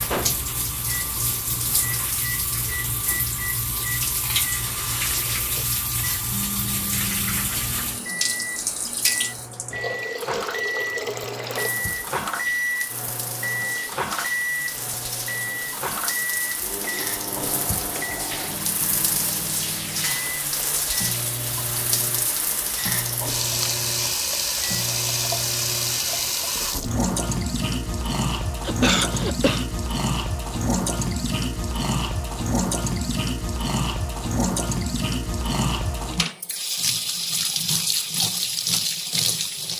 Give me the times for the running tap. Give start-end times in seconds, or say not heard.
0.0-39.7.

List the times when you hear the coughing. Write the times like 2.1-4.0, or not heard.
28.6-29.6.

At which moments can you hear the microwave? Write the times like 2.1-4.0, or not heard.
0.0-26.4.